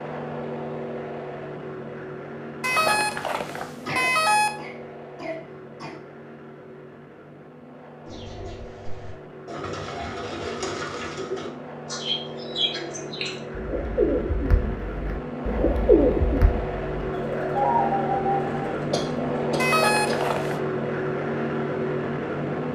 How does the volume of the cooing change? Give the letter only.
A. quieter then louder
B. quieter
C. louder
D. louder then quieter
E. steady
C.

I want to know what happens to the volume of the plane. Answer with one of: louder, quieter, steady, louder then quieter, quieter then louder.
quieter then louder.